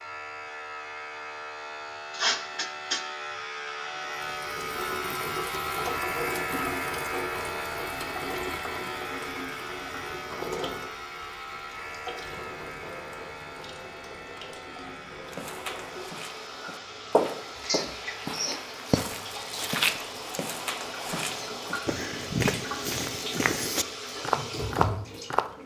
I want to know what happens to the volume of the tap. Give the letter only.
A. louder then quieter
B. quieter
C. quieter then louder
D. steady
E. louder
C.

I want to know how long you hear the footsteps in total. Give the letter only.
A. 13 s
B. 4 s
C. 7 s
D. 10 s
D.